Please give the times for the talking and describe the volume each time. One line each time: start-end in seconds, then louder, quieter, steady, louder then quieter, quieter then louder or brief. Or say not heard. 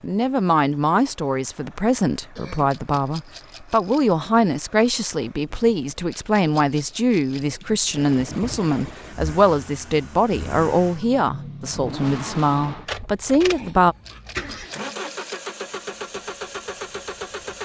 0.0-13.9 steady.